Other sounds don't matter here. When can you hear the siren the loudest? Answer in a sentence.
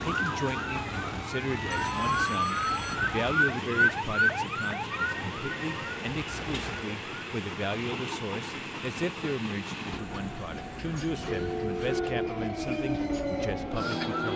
The volume of the siren peaks at 4 seconds.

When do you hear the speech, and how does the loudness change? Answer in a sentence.
You can hear the speech from 0.0 to 14.3 s, at a steady volume.